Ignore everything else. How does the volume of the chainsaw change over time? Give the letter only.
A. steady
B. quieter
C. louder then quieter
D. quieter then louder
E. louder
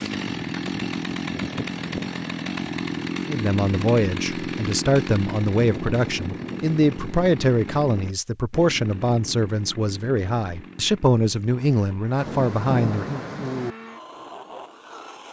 B.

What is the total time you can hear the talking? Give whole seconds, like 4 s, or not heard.
10 s.